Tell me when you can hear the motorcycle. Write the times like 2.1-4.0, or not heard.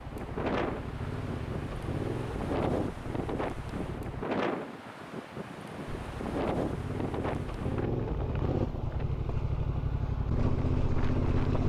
0.0-4.2, 5.8-11.6.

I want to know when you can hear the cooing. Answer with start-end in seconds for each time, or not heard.
not heard.